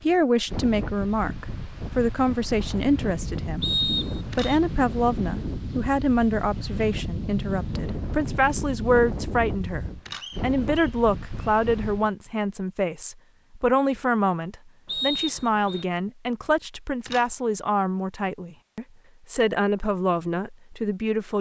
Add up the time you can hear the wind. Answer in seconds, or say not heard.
12 s.